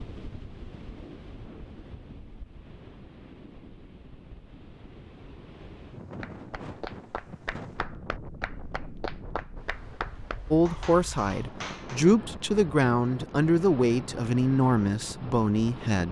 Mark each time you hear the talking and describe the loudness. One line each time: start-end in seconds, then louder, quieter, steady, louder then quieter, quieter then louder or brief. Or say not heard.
10.5-16.0 steady.